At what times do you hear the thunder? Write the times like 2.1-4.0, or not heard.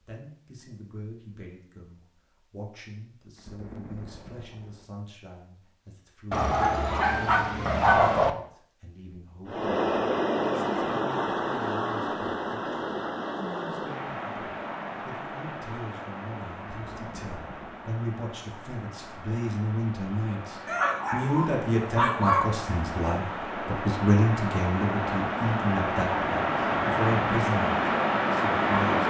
3.4-4.8, 16.8-17.9.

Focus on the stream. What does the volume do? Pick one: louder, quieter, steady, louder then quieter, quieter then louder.
quieter then louder.